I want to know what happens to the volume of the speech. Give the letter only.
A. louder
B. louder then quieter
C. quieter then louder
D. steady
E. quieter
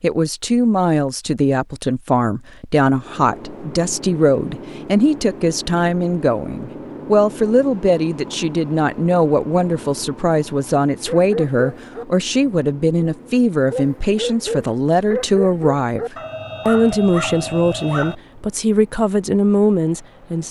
D.